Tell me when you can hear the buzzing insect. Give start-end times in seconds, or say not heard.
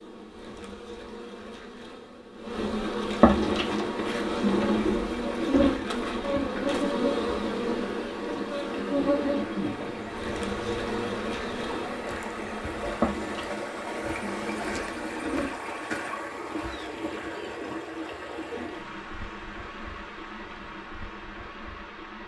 0.0-15.8.